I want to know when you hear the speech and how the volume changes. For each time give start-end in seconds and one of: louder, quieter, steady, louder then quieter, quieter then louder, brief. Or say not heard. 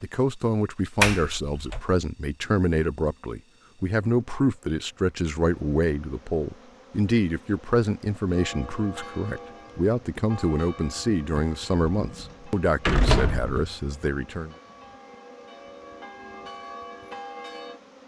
0.0-14.6 steady.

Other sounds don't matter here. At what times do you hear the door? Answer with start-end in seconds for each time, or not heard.
1.0-1.8, 11.9-13.8.